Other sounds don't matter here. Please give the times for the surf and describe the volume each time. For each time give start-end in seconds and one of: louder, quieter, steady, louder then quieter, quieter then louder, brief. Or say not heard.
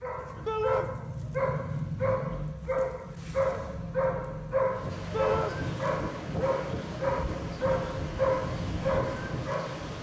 4.7-9.9 steady.